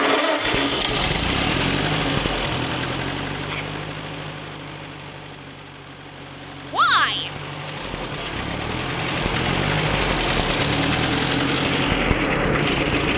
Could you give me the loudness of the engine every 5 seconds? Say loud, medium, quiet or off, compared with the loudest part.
loud, medium, loud.